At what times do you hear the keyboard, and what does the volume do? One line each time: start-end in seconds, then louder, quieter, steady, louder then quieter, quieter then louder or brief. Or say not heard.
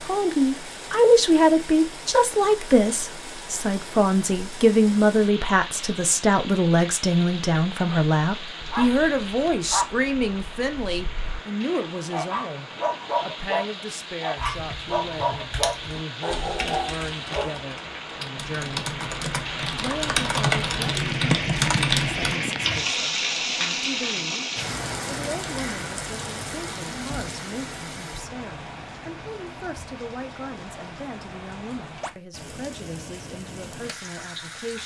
14.3-22.9 louder.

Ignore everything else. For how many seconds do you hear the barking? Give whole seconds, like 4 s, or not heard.
9 s.